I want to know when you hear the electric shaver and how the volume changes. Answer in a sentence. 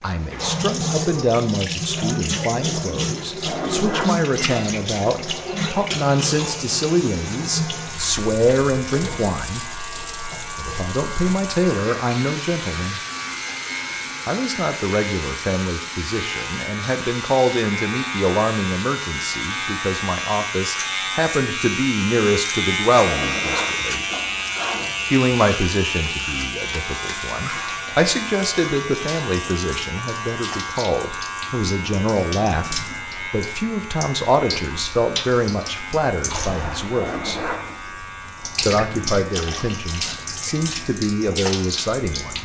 You can hear the electric shaver from 5.3 to 42.3 s, getting louder then quieter.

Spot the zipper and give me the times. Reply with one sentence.
The zipper can be heard from 3.4 to 4.1 s, from 23.0 to 24.9 s and from 36.9 to 37.9 s.